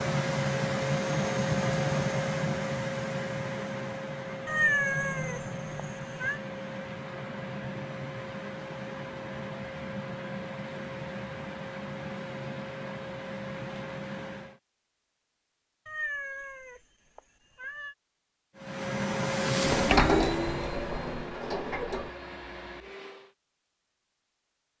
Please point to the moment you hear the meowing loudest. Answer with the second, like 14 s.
5 s.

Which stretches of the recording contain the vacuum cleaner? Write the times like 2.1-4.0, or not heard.
0.0-14.6, 18.6-23.4.